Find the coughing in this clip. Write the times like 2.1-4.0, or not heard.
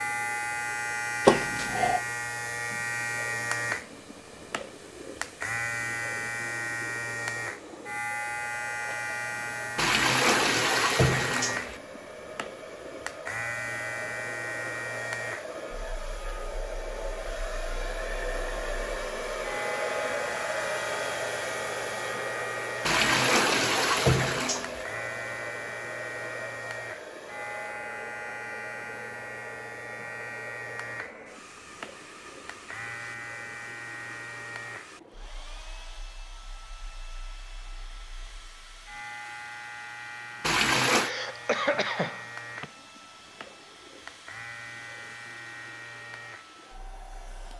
1.2-2.0, 40.9-42.6.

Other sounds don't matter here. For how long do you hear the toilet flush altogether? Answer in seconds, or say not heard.
5 s.